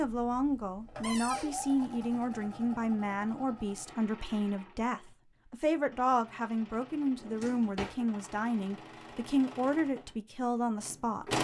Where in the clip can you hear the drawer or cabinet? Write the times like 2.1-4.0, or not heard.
1.0-1.6, 7.2-8.0.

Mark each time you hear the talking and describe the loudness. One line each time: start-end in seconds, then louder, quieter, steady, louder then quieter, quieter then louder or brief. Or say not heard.
0.0-11.3 steady.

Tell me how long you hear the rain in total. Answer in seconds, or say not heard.
not heard.